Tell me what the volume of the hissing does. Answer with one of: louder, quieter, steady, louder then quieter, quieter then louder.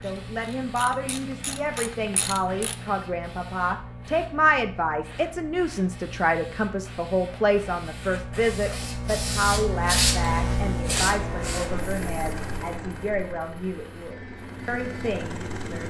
louder then quieter.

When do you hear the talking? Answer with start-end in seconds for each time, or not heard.
0.0-15.8.